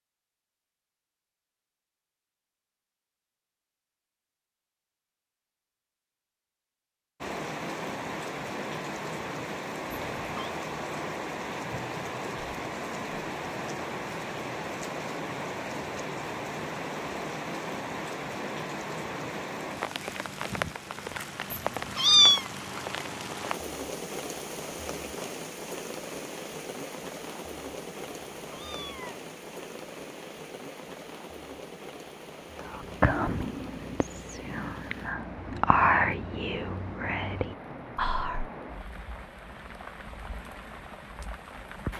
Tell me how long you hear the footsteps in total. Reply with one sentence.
You can't hear the footsteps here.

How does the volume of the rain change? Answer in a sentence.
The loudness of the rain goes down.